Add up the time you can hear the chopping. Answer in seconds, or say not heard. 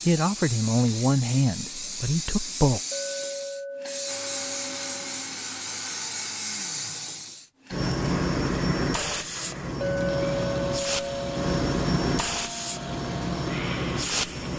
not heard.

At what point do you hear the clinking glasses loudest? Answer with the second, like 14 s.
10 s.